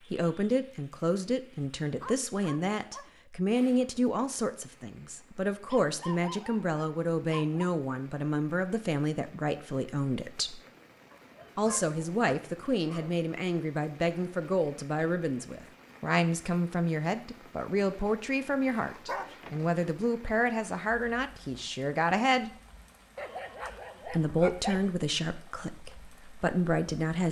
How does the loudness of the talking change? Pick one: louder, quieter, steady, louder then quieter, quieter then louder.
steady.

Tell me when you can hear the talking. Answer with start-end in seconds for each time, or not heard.
0.1-10.6, 11.6-22.5, 24.1-27.2.